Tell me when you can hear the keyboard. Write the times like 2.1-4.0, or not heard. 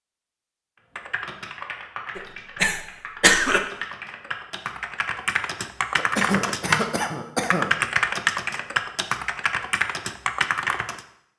0.9-11.1.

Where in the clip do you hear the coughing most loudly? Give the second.
3 s.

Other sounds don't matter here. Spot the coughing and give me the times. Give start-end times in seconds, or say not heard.
2.1-3.6, 6.0-7.8.